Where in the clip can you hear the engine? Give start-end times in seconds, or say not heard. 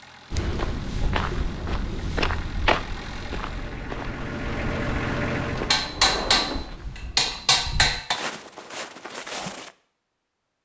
0.0-6.0.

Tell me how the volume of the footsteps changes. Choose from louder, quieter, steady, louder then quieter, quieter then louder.
quieter then louder.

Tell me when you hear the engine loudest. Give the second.
5 s.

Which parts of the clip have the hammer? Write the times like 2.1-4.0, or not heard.
5.7-8.2.